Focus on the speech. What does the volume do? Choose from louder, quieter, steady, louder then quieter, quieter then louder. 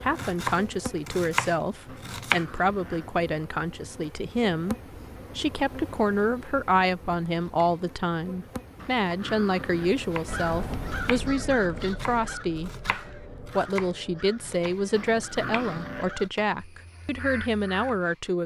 steady.